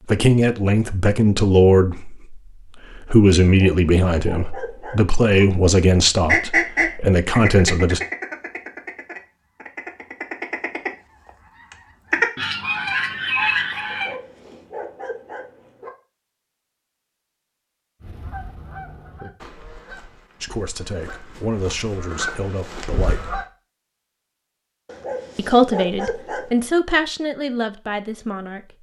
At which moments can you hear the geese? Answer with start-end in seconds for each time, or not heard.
6.2-14.2, 18.0-23.4.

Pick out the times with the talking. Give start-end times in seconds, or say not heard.
0.1-8.0, 20.4-23.4, 25.4-28.7.